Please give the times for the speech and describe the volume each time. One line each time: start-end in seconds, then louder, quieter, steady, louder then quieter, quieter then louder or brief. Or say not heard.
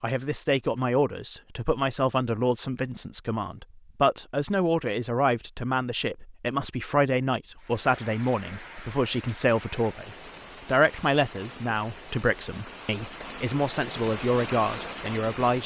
0.0-15.6 steady.